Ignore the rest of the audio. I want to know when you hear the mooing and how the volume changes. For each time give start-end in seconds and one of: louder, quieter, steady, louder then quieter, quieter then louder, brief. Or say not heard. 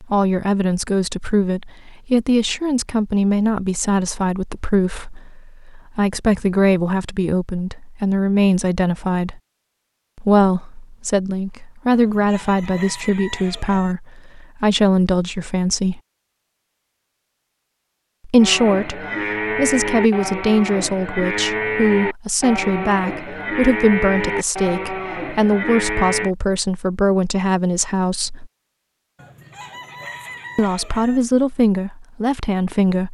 18.4-26.3 steady.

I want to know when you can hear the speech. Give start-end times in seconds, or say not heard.
0.0-9.4, 10.2-16.0, 18.2-28.5, 30.6-33.0.